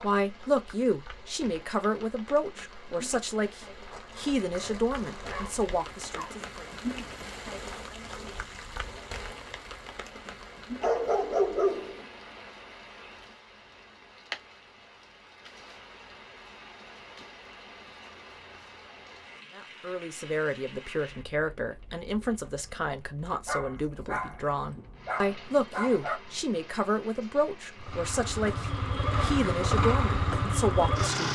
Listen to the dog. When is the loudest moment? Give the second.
12 s.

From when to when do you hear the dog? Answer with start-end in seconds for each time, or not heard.
3.9-6.3, 10.8-12.1, 23.4-26.2.